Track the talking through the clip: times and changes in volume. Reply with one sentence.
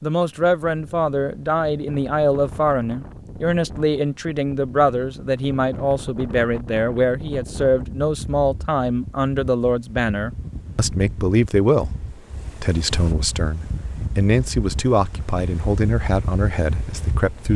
You can hear the talking from 0.0 to 11.9 s, at a steady volume; and from 12.6 to 17.5 s, getting louder then quieter.